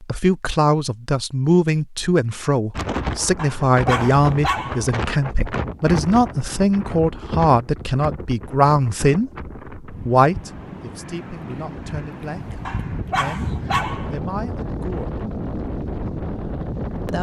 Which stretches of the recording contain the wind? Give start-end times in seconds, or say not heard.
2.8-17.1.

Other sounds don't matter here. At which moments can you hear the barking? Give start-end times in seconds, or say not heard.
3.4-5.0, 12.7-14.2.